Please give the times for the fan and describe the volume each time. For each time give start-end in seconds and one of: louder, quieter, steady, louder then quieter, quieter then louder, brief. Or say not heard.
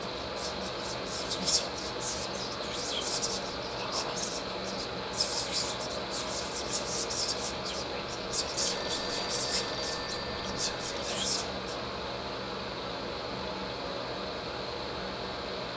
0.0-15.7 steady.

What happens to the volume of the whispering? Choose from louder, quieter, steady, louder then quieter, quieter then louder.
steady.